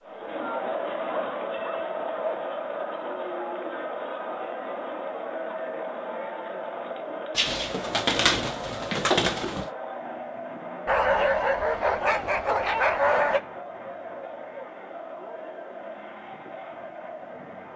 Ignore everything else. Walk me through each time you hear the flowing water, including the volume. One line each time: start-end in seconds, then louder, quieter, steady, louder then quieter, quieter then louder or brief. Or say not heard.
not heard.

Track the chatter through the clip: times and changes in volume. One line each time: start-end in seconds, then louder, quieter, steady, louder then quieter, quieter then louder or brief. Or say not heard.
0.0-17.7 quieter.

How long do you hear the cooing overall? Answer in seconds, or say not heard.
2 s.